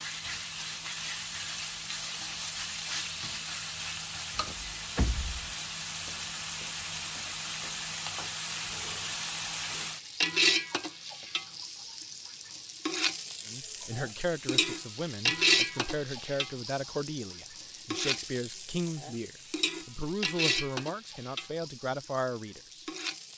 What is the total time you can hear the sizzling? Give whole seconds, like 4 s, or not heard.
23 s.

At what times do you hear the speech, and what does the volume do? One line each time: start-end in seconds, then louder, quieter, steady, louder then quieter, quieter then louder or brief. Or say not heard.
13.4-22.9 steady.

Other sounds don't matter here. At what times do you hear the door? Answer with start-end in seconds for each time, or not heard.
4.3-5.5.